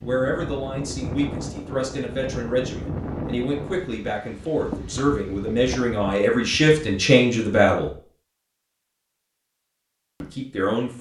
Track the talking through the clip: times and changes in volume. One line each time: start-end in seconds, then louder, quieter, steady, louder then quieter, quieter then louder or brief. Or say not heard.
0.0-8.0 louder
10.2-10.9 brief.